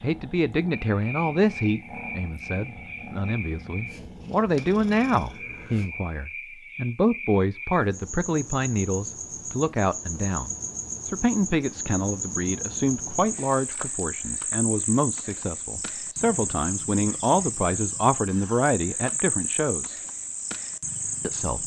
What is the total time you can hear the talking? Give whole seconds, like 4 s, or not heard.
20 s.